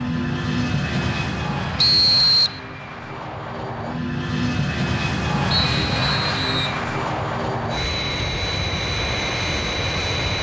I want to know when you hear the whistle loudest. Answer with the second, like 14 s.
2 s.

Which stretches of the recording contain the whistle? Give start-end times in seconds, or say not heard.
1.8-2.6, 5.5-6.8.